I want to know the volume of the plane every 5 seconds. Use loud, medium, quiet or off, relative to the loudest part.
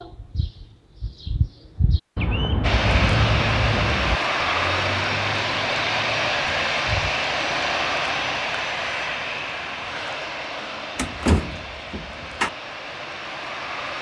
loud, loud, medium.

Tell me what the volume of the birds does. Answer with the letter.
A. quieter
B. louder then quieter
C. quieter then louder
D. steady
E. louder
B.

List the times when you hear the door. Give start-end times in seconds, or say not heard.
10.9-12.5.